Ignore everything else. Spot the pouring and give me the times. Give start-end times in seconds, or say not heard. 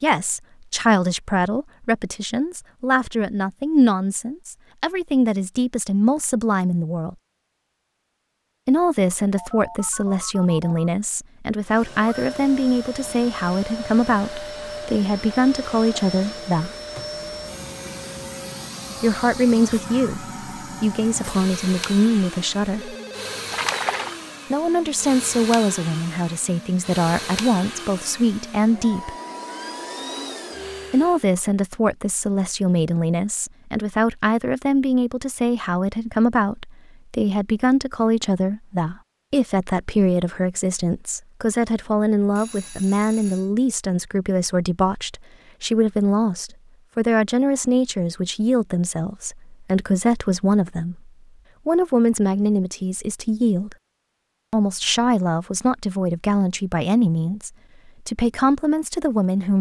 23.5-24.1.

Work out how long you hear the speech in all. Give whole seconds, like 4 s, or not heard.
52 s.